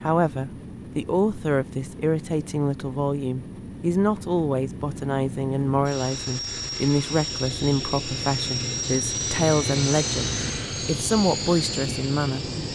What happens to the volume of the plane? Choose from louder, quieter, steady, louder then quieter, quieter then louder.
louder.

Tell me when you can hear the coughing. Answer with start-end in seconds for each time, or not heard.
not heard.